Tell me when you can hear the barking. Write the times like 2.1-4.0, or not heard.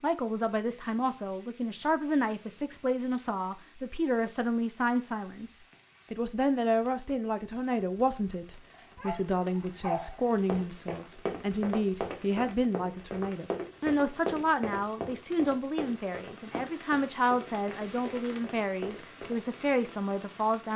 8.7-10.2.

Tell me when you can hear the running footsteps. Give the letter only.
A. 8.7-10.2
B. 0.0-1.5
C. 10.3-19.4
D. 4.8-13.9
C.